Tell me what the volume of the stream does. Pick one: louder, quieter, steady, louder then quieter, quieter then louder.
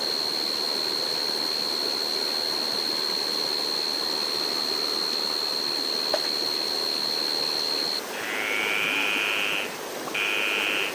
steady.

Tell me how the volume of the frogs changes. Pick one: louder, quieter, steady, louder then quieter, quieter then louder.
steady.